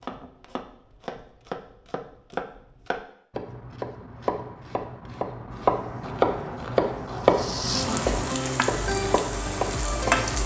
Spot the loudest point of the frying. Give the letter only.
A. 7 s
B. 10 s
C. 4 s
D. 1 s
B.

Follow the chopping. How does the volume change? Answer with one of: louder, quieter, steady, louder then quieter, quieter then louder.
louder then quieter.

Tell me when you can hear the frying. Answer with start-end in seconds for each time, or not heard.
5.7-10.4.